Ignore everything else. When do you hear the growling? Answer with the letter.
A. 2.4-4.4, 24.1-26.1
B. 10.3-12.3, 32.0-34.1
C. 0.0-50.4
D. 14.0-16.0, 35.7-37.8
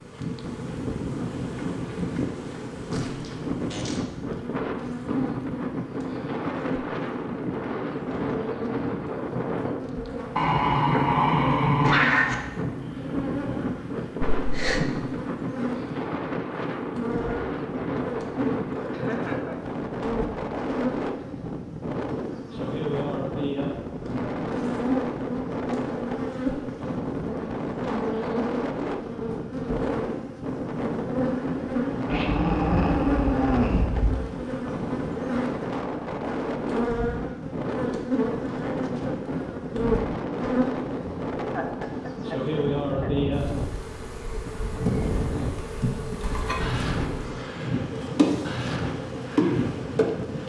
B.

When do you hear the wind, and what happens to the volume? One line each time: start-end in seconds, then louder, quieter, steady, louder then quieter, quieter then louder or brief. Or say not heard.
0.0-50.4 steady.